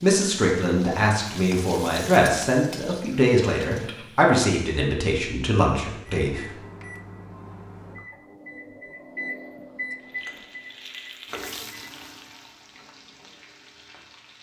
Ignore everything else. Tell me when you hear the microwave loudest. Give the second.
10 s.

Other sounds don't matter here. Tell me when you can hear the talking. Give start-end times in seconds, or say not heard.
0.0-6.5.